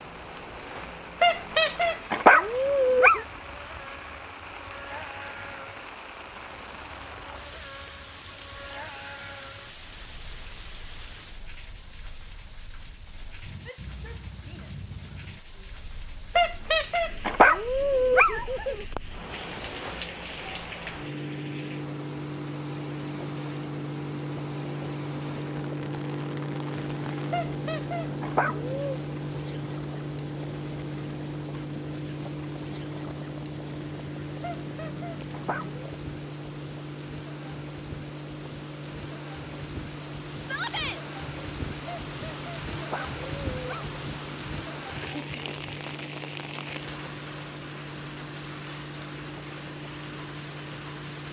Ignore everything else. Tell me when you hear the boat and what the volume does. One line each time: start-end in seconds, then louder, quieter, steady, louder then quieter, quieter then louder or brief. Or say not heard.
0.0-51.2 louder then quieter.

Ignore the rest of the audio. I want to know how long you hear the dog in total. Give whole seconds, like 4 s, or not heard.
10 s.